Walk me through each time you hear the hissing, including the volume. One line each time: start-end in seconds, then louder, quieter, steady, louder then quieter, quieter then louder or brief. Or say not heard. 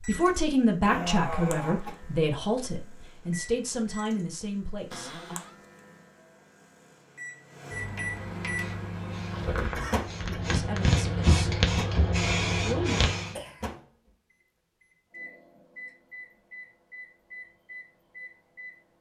8.4-13.3 louder.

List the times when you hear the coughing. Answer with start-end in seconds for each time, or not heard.
0.8-1.9, 9.8-10.4, 13.3-13.8.